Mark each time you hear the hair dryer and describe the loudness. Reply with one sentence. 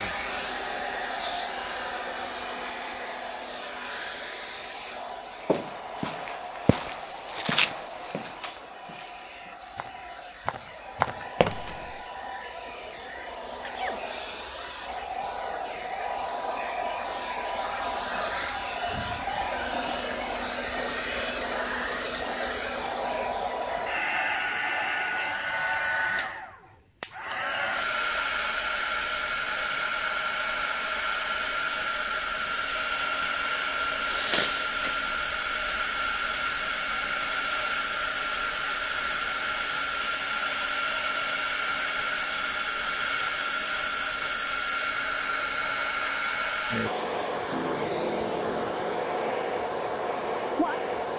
The hair dryer can be heard from 0.0 to 51.1 s, getting louder.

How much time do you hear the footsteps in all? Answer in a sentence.
The footsteps can be heard for 7 seconds in total.